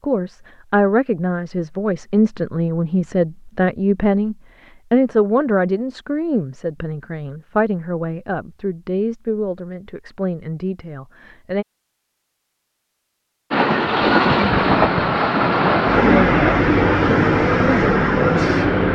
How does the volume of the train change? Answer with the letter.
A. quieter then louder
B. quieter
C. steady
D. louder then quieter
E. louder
C.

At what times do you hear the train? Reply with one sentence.
The train can be heard from 13.5 to 18.9 s.